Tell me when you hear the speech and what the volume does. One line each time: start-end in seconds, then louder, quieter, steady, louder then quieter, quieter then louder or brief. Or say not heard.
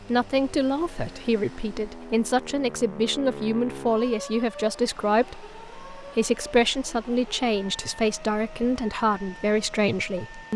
0.0-10.5 steady.